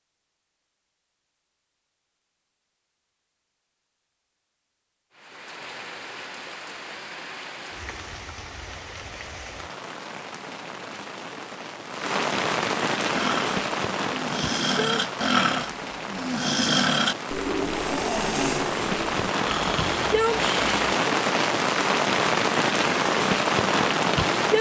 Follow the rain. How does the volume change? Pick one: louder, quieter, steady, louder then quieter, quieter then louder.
louder.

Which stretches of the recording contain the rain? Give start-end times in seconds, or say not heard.
5.1-24.5.